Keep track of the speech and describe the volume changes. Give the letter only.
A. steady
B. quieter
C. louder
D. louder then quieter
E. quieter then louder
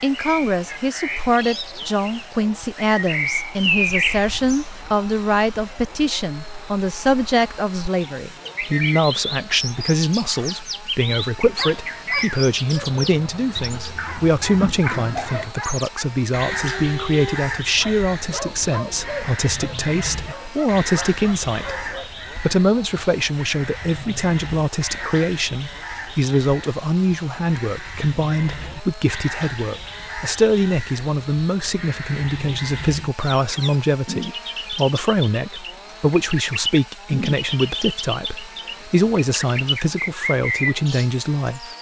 A.